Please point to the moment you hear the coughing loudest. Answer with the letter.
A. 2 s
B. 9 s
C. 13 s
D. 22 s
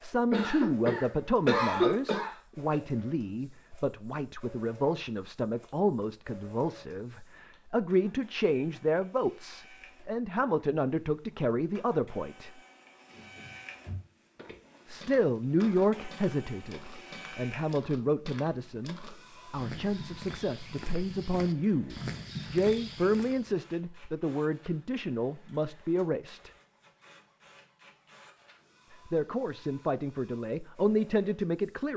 A.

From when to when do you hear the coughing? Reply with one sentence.
The coughing can be heard from 0.3 to 2.8 s.